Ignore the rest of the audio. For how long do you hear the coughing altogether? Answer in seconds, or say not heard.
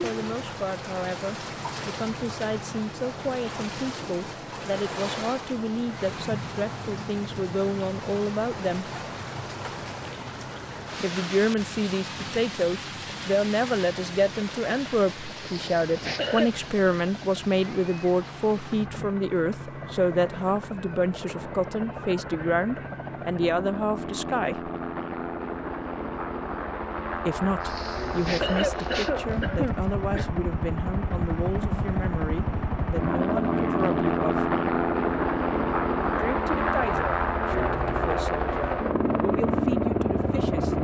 4 s.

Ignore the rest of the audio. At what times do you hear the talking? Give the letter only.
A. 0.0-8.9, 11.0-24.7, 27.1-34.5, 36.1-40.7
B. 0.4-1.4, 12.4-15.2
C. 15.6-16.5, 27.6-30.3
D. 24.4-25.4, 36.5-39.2
A.